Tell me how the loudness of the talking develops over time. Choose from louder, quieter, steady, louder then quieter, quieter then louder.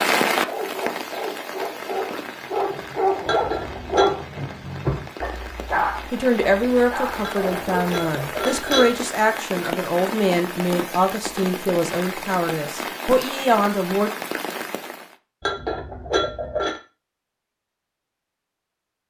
steady.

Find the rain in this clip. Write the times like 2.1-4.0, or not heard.
0.0-15.2.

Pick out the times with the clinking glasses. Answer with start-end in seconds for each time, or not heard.
3.2-4.2, 7.2-9.1, 15.4-16.8.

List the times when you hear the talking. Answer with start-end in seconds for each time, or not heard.
6.1-14.1.